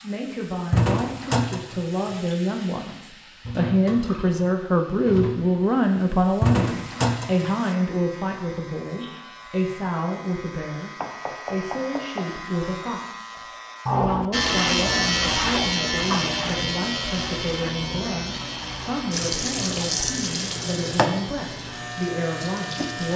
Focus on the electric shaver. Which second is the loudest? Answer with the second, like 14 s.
15 s.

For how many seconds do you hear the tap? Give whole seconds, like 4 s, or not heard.
12 s.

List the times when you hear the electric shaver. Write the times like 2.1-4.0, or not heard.
6.6-23.1.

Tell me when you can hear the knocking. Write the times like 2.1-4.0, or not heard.
11.0-12.3.